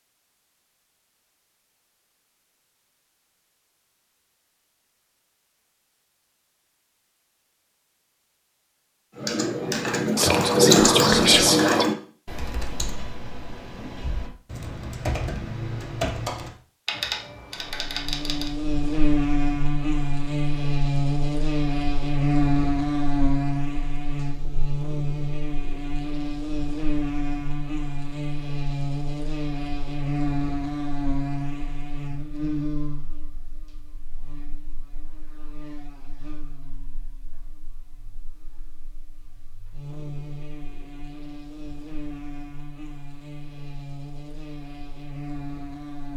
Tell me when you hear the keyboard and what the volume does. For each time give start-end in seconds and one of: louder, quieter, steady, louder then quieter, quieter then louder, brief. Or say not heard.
9.2-18.5 quieter then louder.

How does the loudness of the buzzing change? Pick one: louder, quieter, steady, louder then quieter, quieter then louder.
quieter then louder.